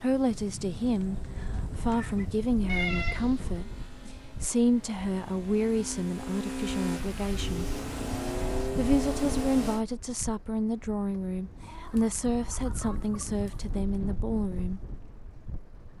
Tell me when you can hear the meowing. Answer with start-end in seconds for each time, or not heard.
2.6-3.5.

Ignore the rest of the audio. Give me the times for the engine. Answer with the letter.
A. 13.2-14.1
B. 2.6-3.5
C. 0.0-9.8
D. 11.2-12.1
C.